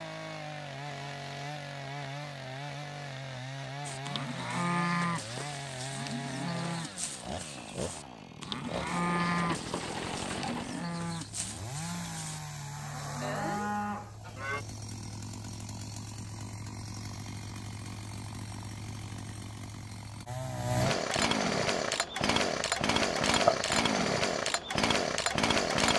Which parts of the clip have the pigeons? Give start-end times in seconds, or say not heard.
8.8-10.7.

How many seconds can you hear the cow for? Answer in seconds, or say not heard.
11 s.